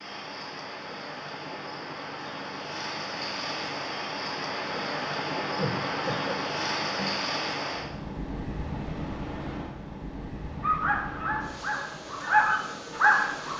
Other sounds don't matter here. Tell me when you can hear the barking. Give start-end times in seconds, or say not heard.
10.6-13.5.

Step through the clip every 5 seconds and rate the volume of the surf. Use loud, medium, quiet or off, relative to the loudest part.
loud, loud, medium.